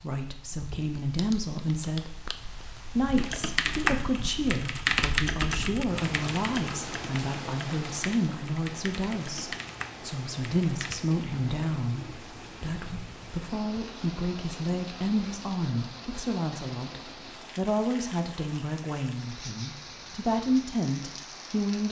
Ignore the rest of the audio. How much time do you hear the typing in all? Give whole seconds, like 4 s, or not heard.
8 s.